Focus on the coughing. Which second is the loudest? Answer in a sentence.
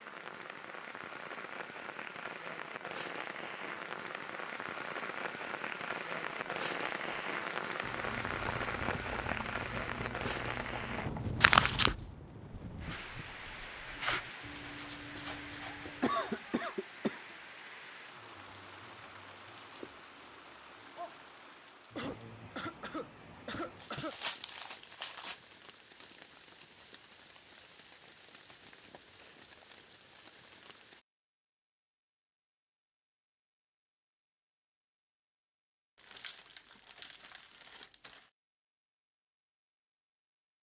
The loudest moment of the coughing is at 16 seconds.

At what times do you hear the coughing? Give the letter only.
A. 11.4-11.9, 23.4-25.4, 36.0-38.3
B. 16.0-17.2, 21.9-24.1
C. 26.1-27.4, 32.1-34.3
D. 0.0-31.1
B.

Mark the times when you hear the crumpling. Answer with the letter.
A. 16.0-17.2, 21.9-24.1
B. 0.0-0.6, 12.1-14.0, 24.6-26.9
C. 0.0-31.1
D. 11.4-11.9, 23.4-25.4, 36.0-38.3
D.